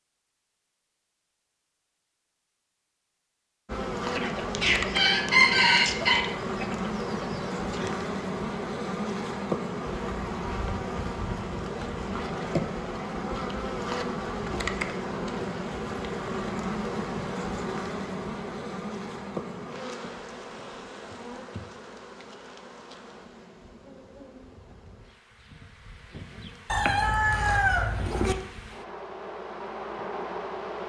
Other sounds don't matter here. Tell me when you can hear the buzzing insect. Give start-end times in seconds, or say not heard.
3.6-30.8.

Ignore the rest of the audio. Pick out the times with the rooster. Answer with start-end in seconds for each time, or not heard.
4.2-7.9, 26.7-28.4.